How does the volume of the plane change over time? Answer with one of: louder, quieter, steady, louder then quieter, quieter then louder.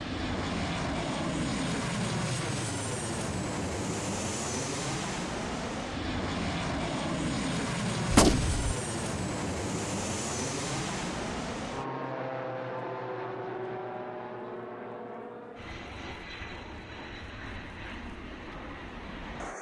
quieter.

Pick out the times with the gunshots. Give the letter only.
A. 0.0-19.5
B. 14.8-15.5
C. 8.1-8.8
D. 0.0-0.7
C.